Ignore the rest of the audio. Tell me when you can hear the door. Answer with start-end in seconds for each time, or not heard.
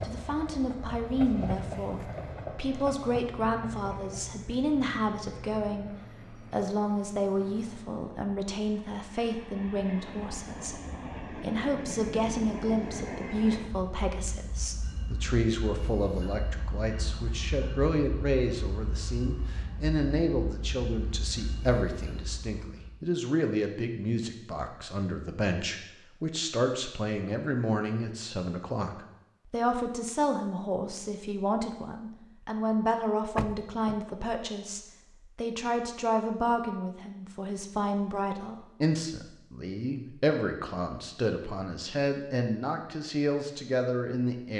33.4-34.1.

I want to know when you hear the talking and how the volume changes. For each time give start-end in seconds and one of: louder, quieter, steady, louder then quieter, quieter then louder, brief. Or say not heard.
0.0-44.5 steady.